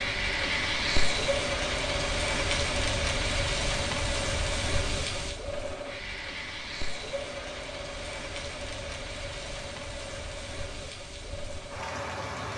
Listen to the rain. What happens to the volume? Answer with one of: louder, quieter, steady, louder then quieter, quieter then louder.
quieter.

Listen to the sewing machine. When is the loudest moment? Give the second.
2 s.